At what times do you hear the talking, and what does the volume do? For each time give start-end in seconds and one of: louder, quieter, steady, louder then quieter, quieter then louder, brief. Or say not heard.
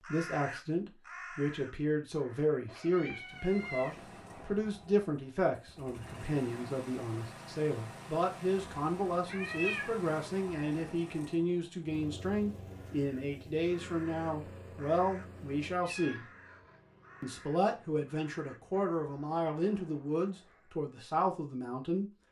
0.0-16.2 steady
17.2-22.1 steady.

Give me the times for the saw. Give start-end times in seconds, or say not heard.
not heard.